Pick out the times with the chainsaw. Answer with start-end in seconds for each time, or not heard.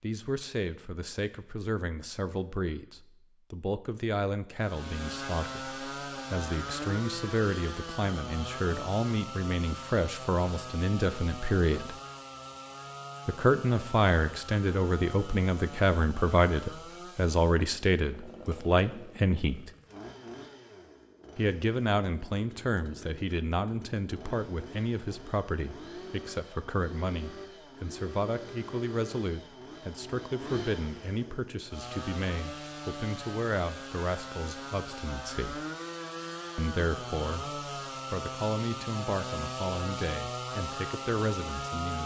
4.5-42.0.